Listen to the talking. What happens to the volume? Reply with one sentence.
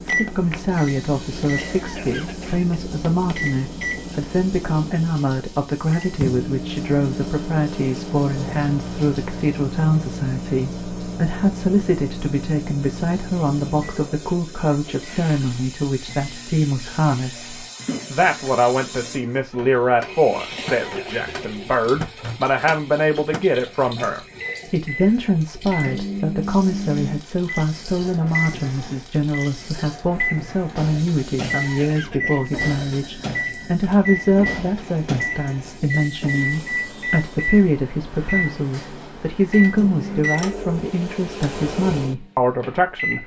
The volume of the talking stays about the same.